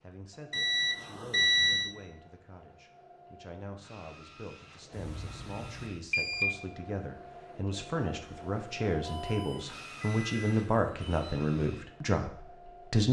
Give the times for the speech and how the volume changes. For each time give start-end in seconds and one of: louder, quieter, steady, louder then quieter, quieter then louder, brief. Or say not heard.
0.0-13.0 louder.